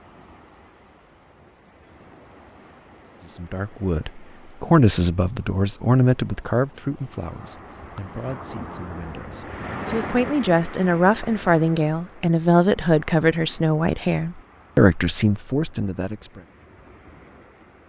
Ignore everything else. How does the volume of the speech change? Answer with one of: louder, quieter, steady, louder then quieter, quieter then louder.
quieter then louder.